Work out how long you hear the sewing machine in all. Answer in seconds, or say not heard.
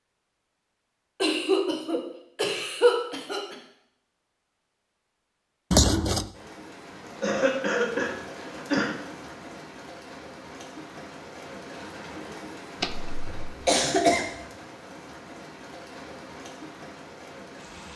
not heard.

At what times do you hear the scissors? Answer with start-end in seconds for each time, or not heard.
5.7-6.3, 12.8-13.3.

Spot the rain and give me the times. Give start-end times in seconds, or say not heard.
6.3-17.9.